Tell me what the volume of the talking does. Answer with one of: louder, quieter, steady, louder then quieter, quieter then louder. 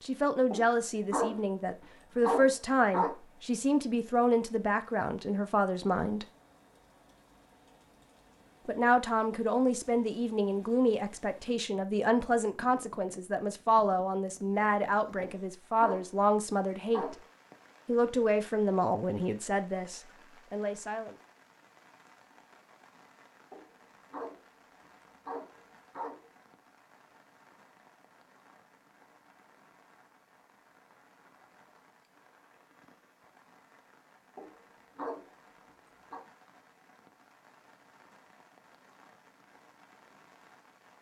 steady.